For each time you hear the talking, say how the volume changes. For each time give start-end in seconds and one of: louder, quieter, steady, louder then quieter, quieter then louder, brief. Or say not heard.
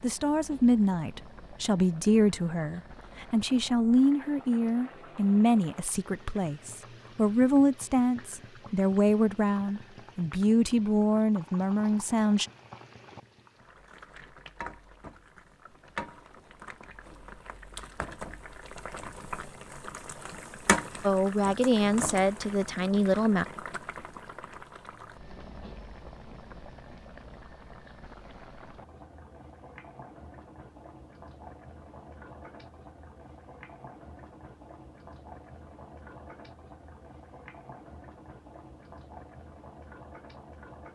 0.0-12.4 steady
21.0-23.4 brief.